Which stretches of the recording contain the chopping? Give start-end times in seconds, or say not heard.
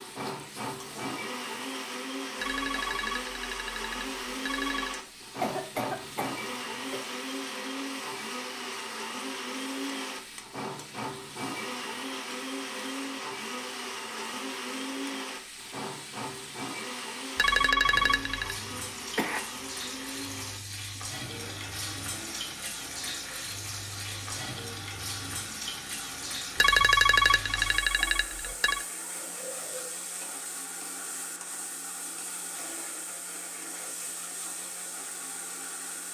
not heard.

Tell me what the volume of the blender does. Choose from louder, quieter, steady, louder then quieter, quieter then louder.
quieter.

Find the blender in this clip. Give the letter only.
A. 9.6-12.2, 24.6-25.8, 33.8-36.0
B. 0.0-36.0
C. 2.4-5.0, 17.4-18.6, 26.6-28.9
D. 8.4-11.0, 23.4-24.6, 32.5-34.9
B.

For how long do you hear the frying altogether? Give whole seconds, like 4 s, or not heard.
36 s.